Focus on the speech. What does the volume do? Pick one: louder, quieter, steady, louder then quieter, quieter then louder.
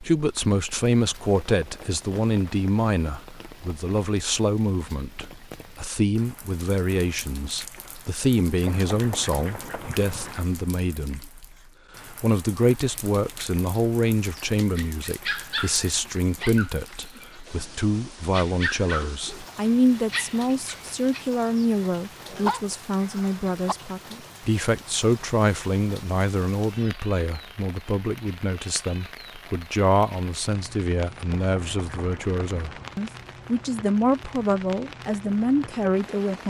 steady.